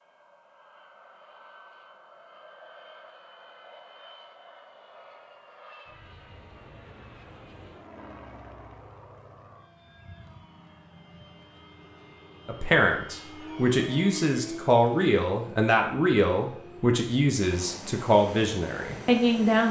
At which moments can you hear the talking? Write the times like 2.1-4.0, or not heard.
12.4-19.6.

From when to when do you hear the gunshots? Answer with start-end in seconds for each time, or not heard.
not heard.